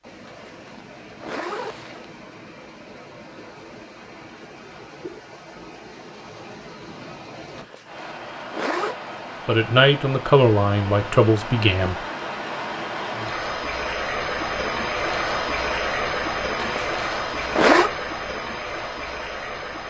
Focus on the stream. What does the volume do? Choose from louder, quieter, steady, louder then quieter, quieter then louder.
louder.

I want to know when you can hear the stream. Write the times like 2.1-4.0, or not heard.
0.0-19.8.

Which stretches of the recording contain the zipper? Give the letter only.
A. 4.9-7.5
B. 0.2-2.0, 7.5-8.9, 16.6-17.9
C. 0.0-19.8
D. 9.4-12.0
B.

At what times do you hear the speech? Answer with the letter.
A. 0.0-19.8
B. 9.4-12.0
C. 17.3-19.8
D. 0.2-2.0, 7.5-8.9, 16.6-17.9
B.